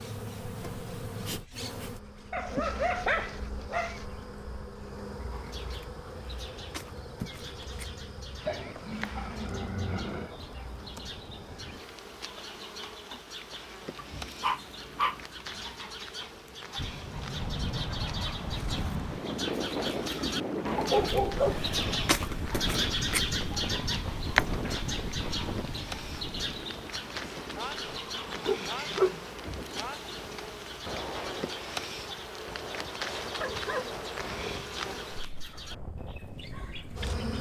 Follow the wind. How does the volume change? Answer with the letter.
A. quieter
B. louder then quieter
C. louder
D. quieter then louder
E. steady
A.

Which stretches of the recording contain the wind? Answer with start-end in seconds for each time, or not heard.
16.8-37.1.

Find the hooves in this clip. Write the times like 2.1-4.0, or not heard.
not heard.